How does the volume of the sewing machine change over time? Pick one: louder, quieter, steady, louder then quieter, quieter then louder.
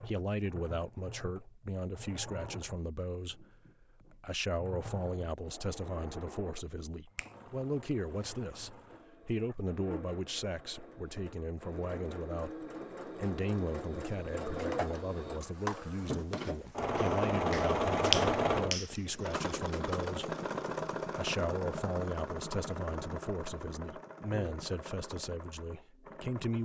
louder then quieter.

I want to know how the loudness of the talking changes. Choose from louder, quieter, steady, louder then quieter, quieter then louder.
steady.